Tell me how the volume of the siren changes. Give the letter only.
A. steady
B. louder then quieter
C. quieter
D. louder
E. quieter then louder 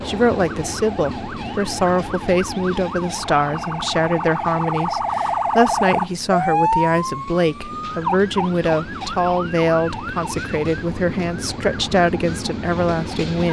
B.